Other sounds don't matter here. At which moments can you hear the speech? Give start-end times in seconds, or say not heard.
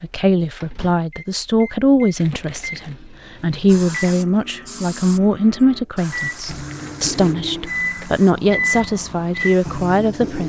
0.0-10.4.